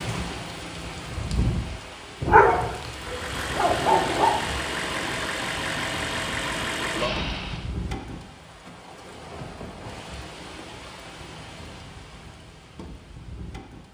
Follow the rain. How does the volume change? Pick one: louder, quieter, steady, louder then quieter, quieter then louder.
quieter.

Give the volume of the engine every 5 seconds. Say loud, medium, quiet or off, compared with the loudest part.
loud, loud, off.